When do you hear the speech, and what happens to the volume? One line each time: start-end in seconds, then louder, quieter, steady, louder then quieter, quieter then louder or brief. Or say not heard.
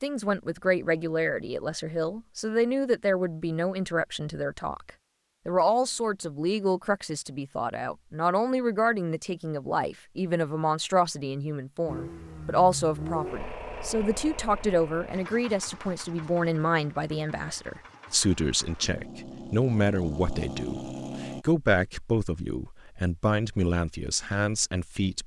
0.0-25.2 steady.